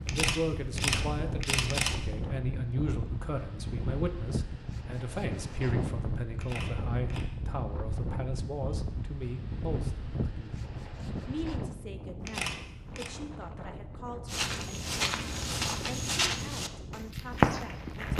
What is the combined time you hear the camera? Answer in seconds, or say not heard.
4 s.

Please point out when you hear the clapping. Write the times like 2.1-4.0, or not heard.
not heard.